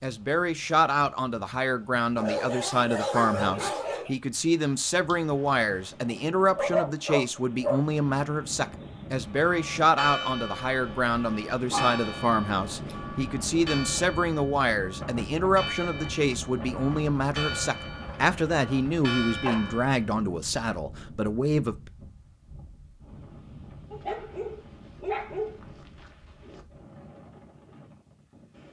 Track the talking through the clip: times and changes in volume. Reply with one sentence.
The talking can be heard from 0.0 to 21.9 s, at a steady volume.